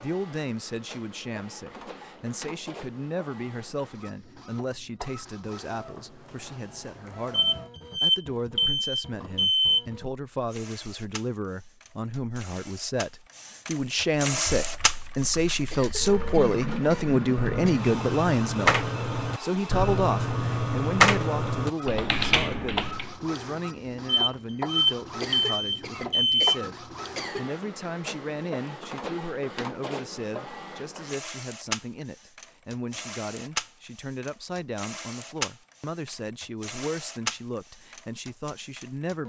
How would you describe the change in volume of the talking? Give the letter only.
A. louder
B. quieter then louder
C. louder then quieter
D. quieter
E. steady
C.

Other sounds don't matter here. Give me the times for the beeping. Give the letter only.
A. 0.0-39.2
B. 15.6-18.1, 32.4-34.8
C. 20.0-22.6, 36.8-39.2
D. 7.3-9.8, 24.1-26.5
D.